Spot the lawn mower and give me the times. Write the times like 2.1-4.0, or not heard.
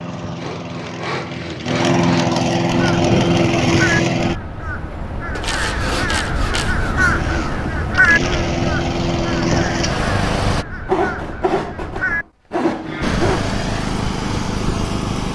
0.0-4.3, 7.0-10.7, 13.0-15.3.